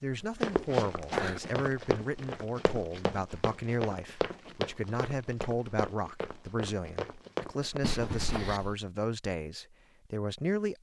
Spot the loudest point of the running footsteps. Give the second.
1 s.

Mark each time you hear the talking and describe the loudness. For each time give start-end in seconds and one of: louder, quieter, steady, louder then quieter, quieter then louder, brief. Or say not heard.
0.0-10.7 steady.